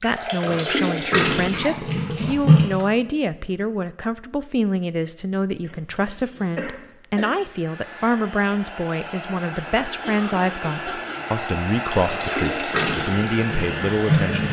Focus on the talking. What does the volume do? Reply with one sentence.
The volume of the talking stays about the same.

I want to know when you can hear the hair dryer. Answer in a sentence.
You can hear the hair dryer from 7.5 to 14.4 s.